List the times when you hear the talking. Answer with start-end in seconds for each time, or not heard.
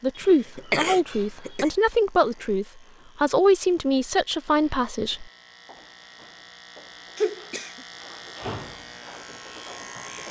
0.0-5.2.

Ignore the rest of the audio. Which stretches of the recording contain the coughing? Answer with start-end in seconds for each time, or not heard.
0.1-1.7, 7.2-7.8.